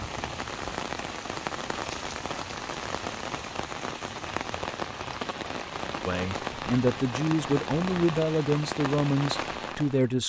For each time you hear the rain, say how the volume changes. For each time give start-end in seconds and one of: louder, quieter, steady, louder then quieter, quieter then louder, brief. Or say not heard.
0.0-10.2 steady.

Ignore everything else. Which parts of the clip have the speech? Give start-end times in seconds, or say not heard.
6.0-10.2.